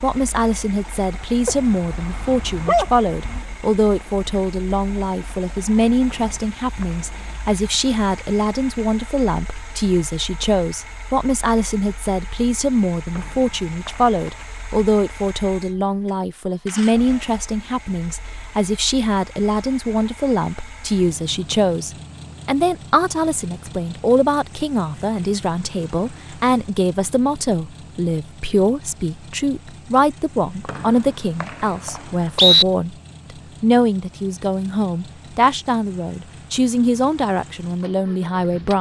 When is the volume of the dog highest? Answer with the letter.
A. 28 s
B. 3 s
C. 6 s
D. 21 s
B.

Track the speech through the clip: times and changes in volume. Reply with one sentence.
The speech can be heard from 0.0 to 38.7 s, at a steady volume.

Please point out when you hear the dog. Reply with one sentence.
The dog can be heard from 1.4 to 3.4 s.